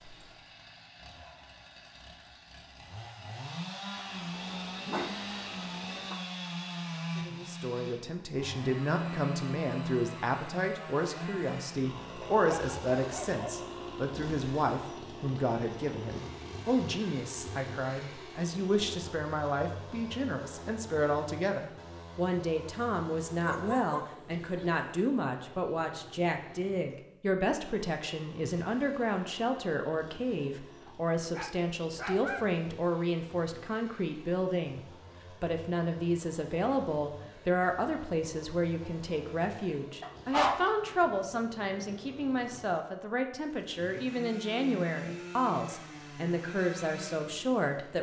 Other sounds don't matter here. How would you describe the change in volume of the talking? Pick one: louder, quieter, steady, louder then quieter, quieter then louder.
steady.